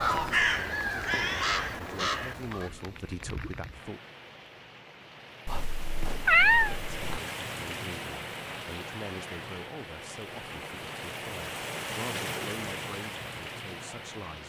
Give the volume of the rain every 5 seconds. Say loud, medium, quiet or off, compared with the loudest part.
medium, loud, loud.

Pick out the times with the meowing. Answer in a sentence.
You can hear the meowing from 5.5 to 7.2 s.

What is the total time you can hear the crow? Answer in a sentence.
The crow can be heard for 3 seconds in total.